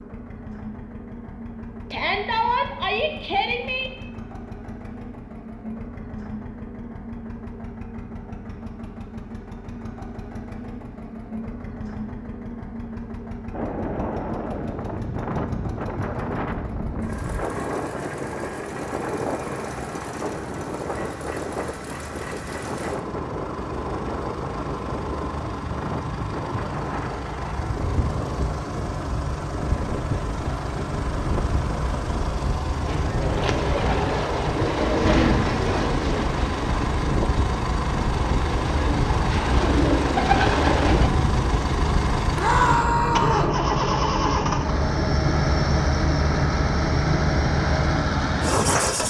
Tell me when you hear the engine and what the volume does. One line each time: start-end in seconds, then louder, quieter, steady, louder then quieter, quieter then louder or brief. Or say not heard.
0.0-49.0 louder.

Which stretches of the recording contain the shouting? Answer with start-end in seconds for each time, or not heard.
1.9-3.9, 42.4-43.5.